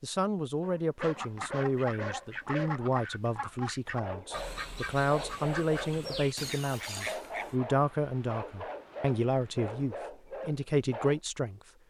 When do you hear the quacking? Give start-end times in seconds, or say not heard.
1.0-7.5.